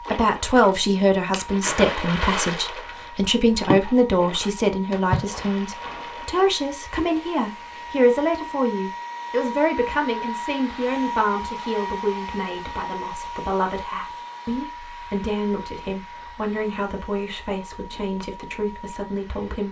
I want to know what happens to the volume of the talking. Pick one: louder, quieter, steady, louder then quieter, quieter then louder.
quieter.